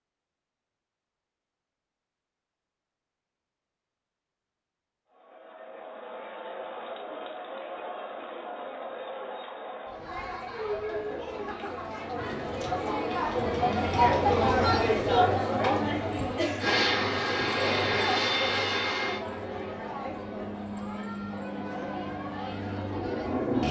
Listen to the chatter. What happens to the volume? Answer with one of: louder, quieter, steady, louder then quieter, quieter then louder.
louder then quieter.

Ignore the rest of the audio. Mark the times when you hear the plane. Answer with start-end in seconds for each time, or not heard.
16.6-23.6.